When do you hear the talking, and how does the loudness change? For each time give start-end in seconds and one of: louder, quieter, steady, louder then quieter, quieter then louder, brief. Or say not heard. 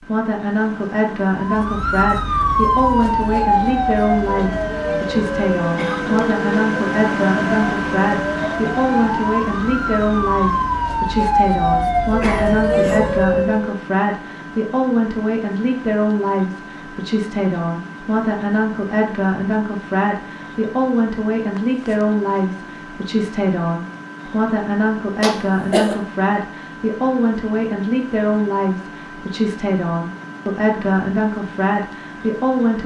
0.0-32.8 steady.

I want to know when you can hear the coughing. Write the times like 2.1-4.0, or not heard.
5.8-6.2, 12.1-13.0, 25.2-26.0.